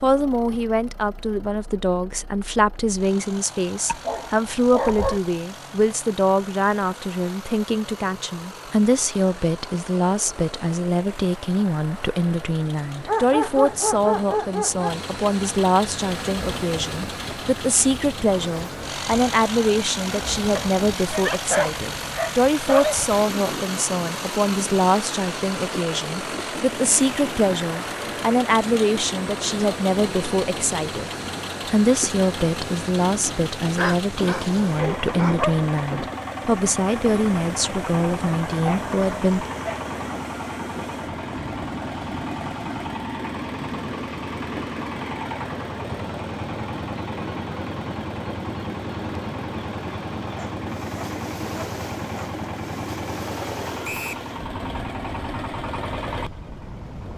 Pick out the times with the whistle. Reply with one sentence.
You can hear the whistle from 53.8 to 54.2 s.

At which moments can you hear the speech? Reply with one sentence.
You can hear the speech from 0.0 to 39.5 s.